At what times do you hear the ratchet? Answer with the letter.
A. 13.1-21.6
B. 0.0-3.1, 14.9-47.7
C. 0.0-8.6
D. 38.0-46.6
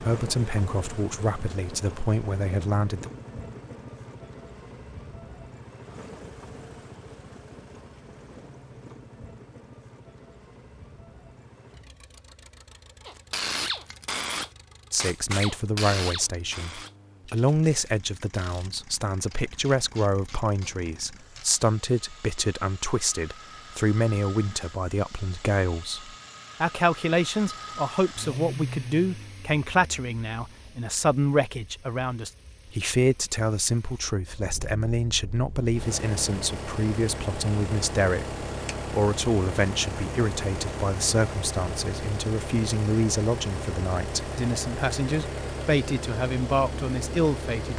A.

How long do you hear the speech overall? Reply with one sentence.
You can hear the speech for 36 seconds altogether.